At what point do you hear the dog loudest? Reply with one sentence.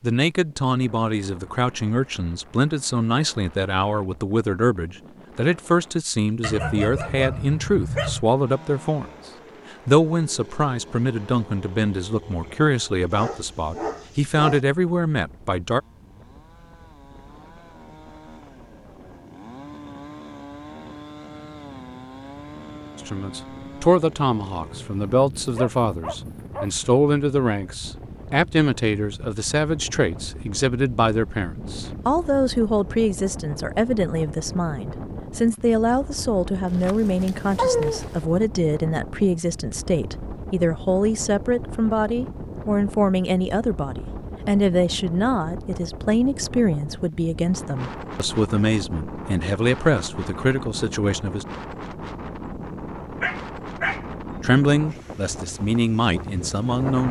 The loudest moment of the dog is at 38 seconds.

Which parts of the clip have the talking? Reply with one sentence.
The talking can be heard from 0.0 to 9.1 s, from 9.8 to 15.8 s, from 22.9 to 51.5 s and from 54.4 to 57.0 s.